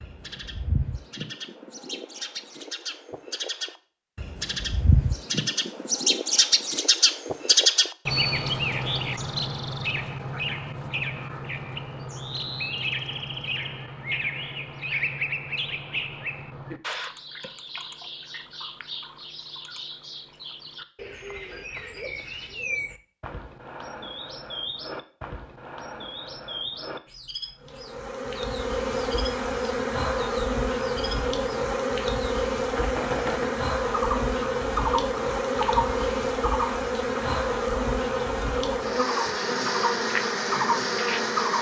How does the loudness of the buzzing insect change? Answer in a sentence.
The volume of the buzzing insect stays about the same.